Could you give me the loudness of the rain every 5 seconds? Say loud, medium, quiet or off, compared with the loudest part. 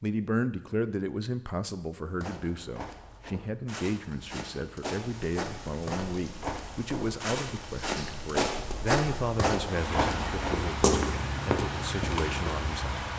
off, medium, loud.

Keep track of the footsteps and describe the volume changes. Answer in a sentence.
The volume of the footsteps goes up.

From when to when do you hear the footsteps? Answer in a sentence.
You can hear the footsteps from 2.1 to 12.6 s.